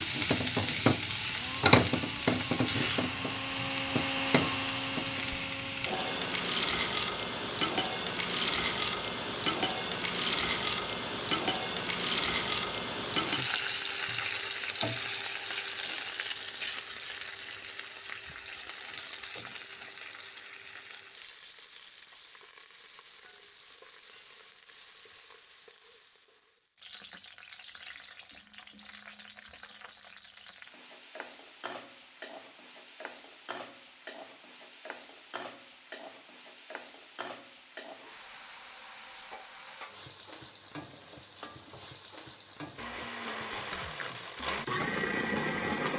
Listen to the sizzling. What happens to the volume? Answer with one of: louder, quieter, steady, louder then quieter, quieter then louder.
quieter.